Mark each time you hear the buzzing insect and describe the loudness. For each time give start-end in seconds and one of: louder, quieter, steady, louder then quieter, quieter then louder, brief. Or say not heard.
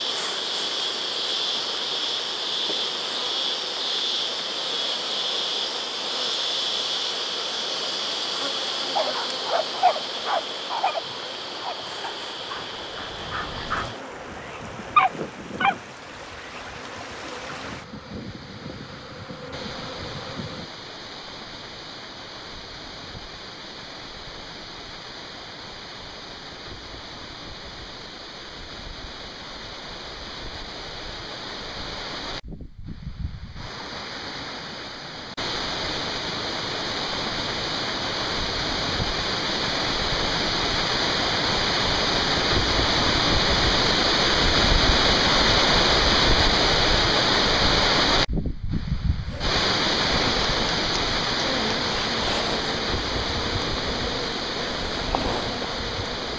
0.0-20.7 quieter
49.2-56.3 steady.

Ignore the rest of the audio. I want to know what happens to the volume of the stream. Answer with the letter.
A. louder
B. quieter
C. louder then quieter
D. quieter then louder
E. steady
A.